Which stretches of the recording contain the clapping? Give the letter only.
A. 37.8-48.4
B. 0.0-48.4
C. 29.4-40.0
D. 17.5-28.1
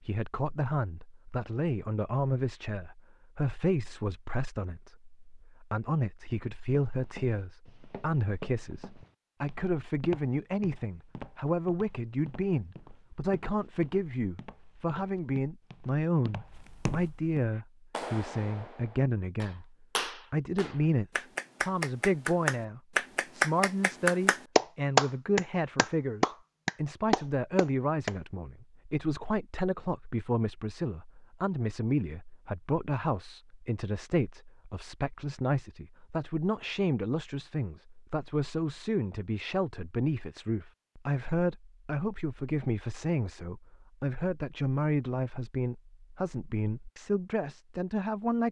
D.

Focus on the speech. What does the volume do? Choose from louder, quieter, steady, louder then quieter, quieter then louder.
steady.